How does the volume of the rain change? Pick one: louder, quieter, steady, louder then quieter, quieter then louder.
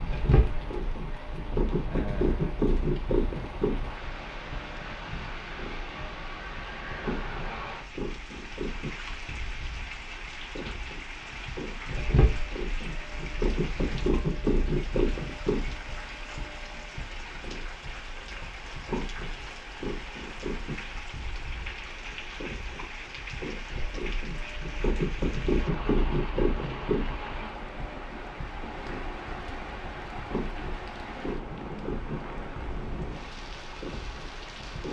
steady.